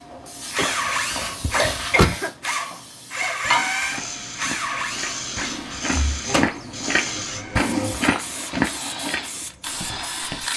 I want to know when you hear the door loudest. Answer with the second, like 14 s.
2 s.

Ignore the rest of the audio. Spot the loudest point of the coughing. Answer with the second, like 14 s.
2 s.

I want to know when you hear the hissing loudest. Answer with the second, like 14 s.
4 s.